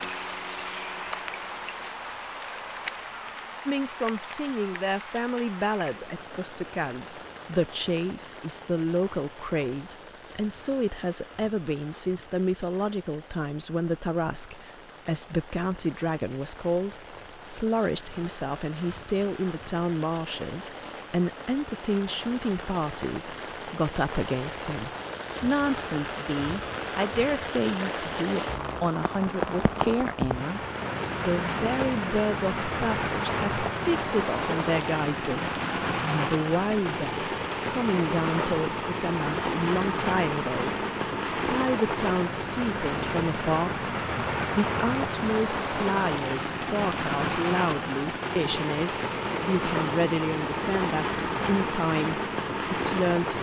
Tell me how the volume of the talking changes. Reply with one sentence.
The volume of the talking stays about the same.